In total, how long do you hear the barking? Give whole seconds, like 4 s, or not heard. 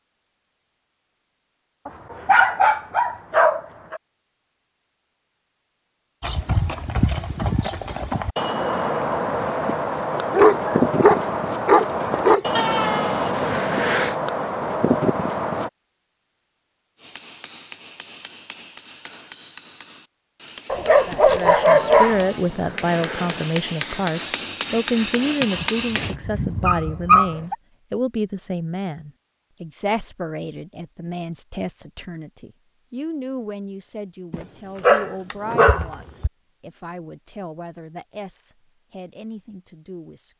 10 s.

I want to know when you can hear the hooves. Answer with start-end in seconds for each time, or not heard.
6.2-15.7.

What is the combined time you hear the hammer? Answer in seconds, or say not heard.
9 s.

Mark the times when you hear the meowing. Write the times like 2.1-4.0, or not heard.
12.6-14.2, 21.7-23.5.